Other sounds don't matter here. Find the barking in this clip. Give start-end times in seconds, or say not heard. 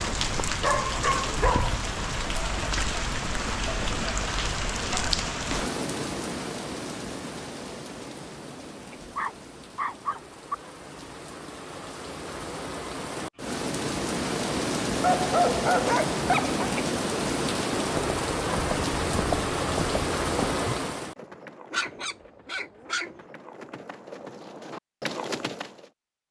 0.6-1.8, 9.0-10.6, 15.0-16.6, 21.7-23.1.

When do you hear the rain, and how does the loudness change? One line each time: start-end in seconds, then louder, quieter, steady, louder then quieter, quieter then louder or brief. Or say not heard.
0.0-21.1 quieter then louder.